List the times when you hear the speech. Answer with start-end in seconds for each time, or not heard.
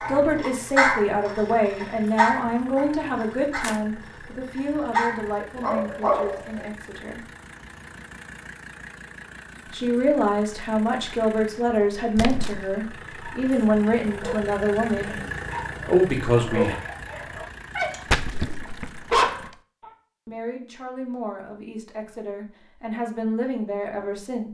0.1-7.2, 9.7-15.2, 15.8-16.8, 20.2-24.4.